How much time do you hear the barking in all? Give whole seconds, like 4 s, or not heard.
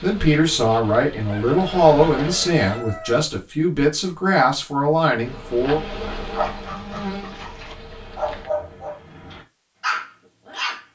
5 s.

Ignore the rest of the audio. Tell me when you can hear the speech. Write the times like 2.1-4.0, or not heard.
0.0-5.8.